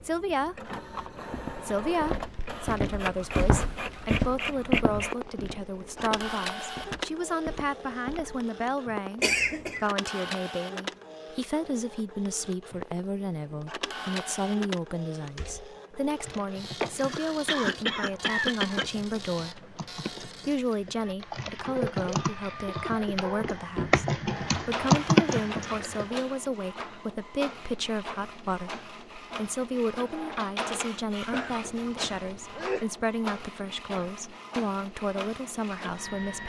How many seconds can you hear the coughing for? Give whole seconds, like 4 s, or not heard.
4 s.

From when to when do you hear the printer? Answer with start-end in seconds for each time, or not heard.
0.0-36.4.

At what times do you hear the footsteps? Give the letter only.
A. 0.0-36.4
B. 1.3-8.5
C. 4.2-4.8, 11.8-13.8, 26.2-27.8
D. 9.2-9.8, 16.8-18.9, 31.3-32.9
B.